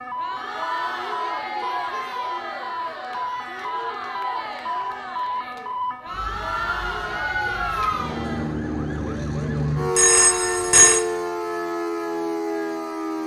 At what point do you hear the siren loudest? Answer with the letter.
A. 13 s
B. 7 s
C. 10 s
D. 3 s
C.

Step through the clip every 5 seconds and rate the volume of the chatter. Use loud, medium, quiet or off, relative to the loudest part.
loud, loud, off.